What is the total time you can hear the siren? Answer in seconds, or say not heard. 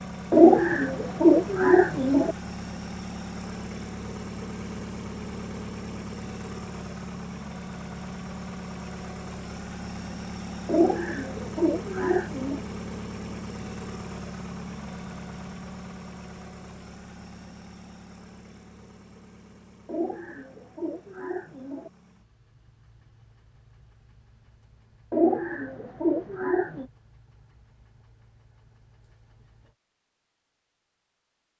not heard.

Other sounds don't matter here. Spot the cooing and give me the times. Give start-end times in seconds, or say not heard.
0.3-2.4, 10.7-12.6, 19.9-21.9, 25.1-26.9.